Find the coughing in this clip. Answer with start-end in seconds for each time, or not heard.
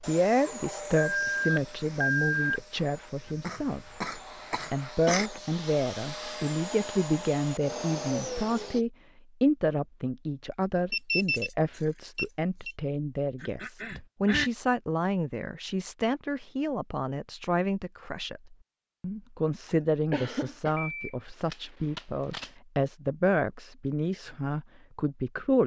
3.2-5.3, 13.4-14.5, 19.6-20.8.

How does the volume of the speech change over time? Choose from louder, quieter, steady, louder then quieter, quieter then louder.
steady.